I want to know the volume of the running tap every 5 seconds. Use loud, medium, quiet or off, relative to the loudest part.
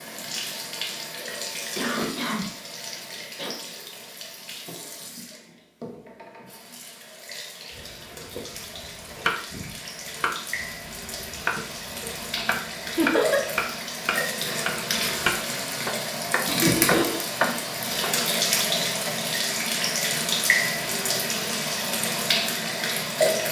medium, quiet, medium, loud, loud.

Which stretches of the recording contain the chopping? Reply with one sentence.
The chopping can be heard from 7.8 to 18.2 s.